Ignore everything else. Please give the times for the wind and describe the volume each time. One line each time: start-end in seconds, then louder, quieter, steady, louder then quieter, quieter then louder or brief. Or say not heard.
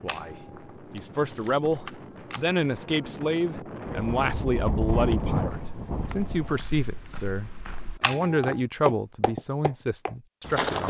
0.0-6.7 louder.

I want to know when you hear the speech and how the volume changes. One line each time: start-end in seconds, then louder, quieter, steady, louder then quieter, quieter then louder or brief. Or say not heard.
0.0-10.8 steady.